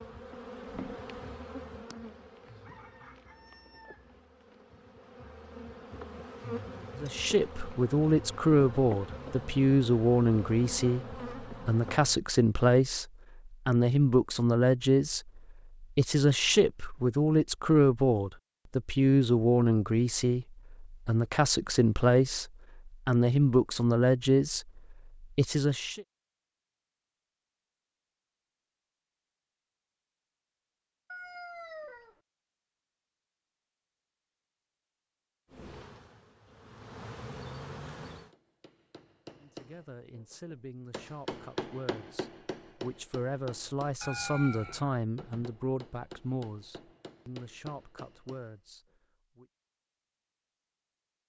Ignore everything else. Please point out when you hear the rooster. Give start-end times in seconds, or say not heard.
2.5-4.2, 31.1-32.2, 44.0-44.9.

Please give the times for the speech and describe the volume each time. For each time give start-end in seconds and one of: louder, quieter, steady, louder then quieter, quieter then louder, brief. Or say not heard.
7.0-26.1 steady
39.4-49.5 louder then quieter.